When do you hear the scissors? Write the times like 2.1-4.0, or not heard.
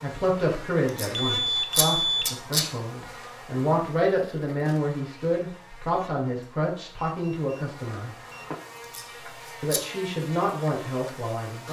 0.8-2.6, 8.8-9.8.